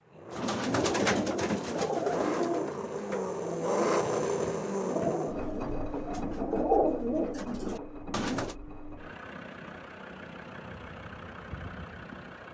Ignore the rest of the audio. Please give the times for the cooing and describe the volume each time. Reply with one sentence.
You can hear the cooing from 0.3 to 8.6 s, getting quieter then louder.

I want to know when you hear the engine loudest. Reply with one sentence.
The volume of the engine peaks at 4 seconds.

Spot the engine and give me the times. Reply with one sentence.
You can hear the engine from 0.0 to 12.4 s.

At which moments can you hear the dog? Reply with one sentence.
The dog can't be heard in this clip.